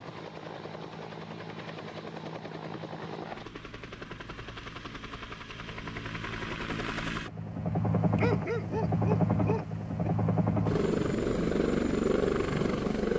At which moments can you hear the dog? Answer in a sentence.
You can hear the dog from 8.2 to 10.1 s.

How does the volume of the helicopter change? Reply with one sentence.
The volume of the helicopter goes up.